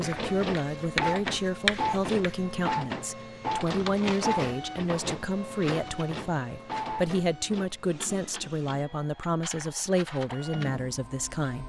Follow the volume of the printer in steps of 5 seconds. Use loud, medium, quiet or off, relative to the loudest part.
loud, medium, medium.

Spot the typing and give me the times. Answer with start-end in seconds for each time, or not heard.
not heard.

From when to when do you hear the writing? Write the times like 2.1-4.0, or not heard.
0.1-2.4.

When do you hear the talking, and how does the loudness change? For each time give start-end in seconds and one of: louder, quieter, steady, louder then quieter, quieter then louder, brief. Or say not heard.
0.0-11.6 steady.